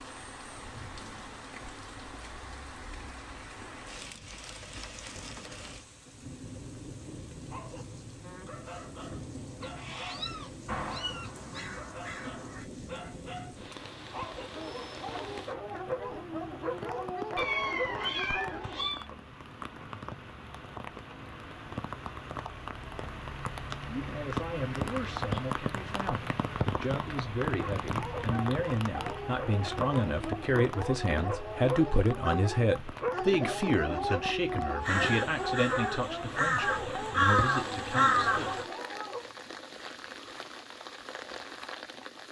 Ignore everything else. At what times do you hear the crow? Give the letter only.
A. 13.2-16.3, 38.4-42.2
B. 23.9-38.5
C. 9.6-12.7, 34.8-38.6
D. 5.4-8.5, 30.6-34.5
C.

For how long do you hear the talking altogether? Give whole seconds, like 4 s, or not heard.
15 s.